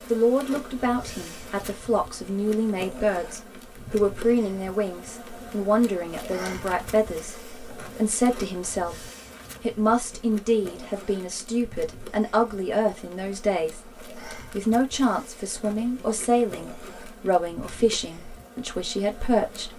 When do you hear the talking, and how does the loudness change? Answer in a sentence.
The talking can be heard from 0.1 to 19.7 s, at a steady volume.